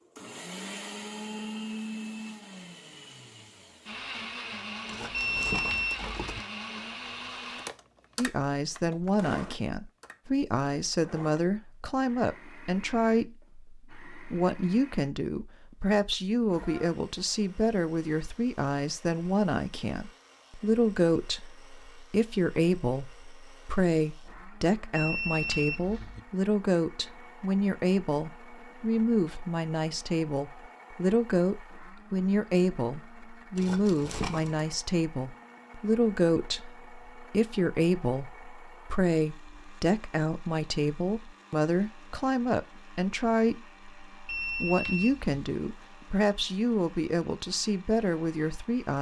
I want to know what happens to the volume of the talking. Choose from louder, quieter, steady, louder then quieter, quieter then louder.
steady.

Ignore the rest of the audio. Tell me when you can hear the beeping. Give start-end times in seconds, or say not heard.
5.1-6.4, 24.9-26.2, 44.2-45.4.